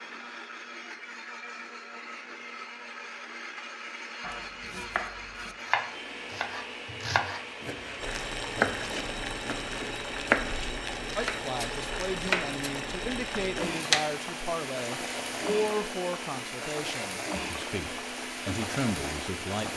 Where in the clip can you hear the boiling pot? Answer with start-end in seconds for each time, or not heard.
8.0-19.7.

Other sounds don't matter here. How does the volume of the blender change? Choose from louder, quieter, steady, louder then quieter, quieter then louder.
steady.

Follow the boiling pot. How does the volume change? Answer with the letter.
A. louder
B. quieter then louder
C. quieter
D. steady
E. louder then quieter
D.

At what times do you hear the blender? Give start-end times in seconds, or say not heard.
0.0-19.7.